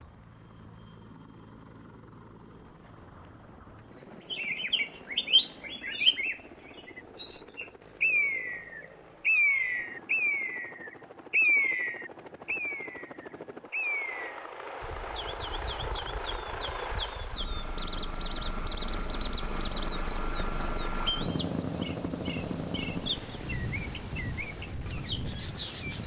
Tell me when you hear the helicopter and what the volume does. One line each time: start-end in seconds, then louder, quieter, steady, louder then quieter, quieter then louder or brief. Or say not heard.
0.0-26.0 louder.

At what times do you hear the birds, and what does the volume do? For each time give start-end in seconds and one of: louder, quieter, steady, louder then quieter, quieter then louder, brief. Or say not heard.
4.3-26.0 quieter.